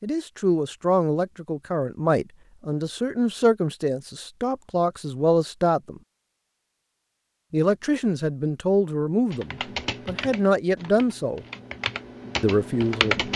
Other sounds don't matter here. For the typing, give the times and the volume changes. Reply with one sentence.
The typing can be heard from 9.3 to 13.3 s, getting quieter then louder.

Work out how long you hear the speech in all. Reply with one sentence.
The speech can be heard for 11 seconds in total.